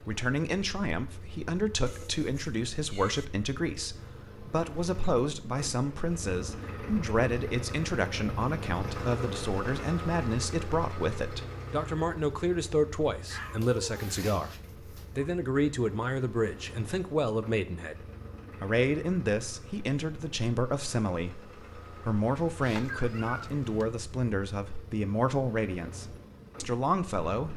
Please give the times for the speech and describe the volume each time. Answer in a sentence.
The speech can be heard from 0.1 to 27.5 s, at a steady volume.